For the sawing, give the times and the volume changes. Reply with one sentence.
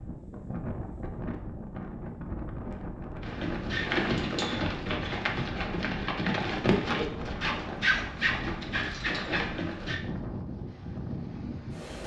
You can't hear the sawing here.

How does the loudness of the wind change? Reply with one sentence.
The volume of the wind stays about the same.